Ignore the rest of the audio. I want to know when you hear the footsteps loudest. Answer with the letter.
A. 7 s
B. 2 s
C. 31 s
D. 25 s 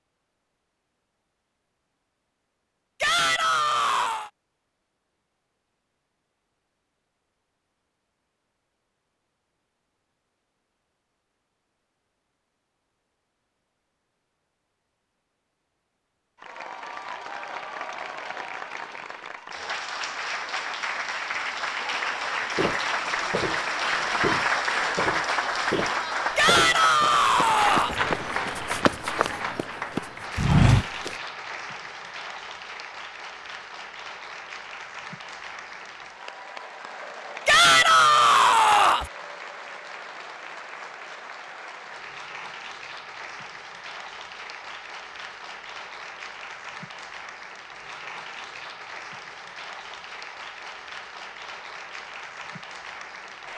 C.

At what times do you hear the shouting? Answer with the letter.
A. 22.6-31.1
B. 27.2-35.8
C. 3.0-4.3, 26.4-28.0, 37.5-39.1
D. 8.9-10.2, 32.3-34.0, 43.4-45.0
C.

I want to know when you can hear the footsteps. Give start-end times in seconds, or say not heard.
22.6-31.1.